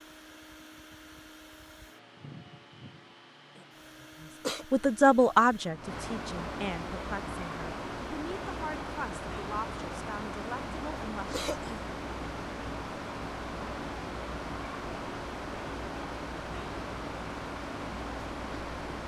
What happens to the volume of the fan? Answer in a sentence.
The volume of the fan goes up.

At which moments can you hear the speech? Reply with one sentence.
You can hear the speech from 4.7 to 11.4 s.